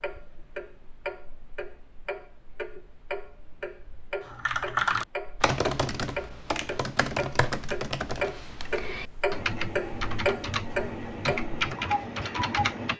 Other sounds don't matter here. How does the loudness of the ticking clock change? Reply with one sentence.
The loudness of the ticking clock goes up.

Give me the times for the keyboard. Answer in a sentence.
The keyboard can be heard from 4.3 to 12.9 s.